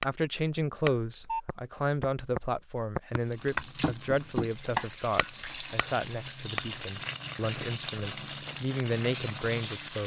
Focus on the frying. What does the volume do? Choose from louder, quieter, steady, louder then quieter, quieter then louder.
louder.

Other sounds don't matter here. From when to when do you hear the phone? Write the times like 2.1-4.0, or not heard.
1.1-1.6.